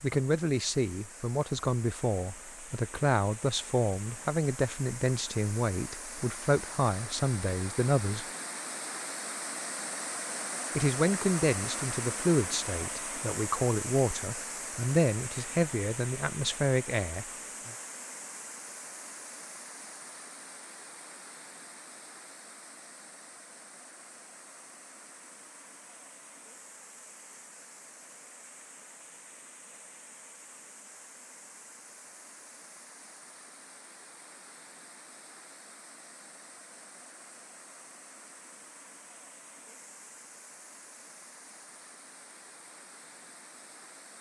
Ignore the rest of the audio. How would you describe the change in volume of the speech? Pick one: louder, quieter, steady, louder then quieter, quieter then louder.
steady.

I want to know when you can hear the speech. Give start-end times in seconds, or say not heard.
0.0-8.2, 10.8-17.7.